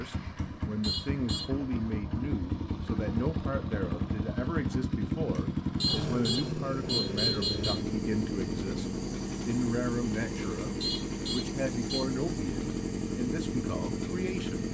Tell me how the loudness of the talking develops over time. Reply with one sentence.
The loudness of the talking stays about the same.